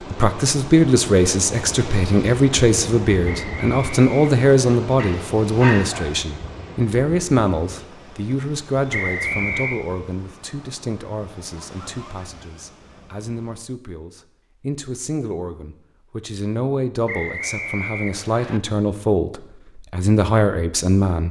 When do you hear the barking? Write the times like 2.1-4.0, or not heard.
5.0-6.2.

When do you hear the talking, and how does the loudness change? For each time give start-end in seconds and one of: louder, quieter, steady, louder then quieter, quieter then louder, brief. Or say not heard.
0.1-21.2 quieter then louder.